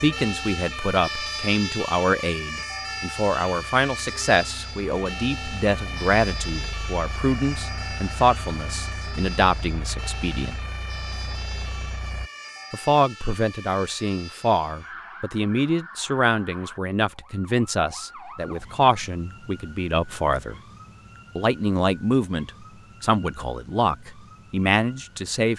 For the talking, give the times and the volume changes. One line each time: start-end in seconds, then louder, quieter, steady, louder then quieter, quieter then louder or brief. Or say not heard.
0.0-10.6 steady
12.7-20.6 steady
21.4-25.5 quieter then louder.